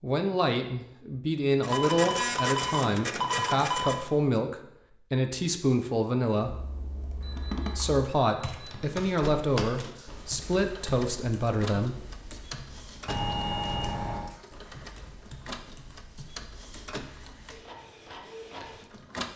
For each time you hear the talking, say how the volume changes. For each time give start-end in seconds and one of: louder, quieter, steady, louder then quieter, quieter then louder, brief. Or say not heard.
0.0-6.5 steady
7.7-12.1 steady.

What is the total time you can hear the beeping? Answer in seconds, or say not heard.
5 s.